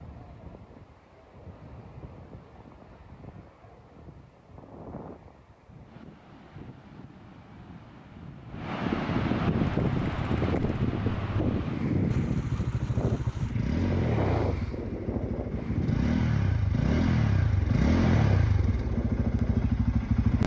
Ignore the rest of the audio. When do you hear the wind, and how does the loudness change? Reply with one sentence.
You can hear the wind from 0.0 to 20.4 s, getting louder then quieter.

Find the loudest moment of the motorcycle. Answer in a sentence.
The loudest moment of the motorcycle is at 18 seconds.